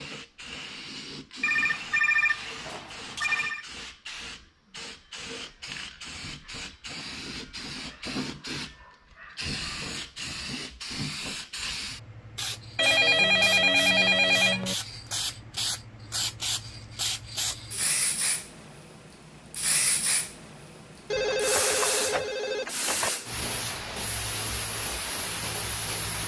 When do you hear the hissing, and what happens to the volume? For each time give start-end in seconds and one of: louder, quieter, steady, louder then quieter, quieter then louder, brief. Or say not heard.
0.0-26.2 louder.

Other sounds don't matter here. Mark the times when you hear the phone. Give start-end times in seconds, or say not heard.
1.4-3.6, 12.8-14.8, 21.1-23.1.